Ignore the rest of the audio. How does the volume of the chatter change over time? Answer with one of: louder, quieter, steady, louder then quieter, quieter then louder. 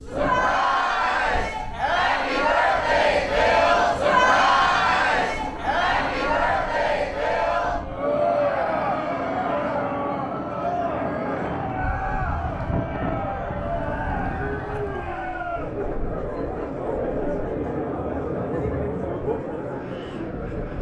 quieter.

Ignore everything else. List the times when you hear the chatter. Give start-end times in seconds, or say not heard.
0.0-20.7.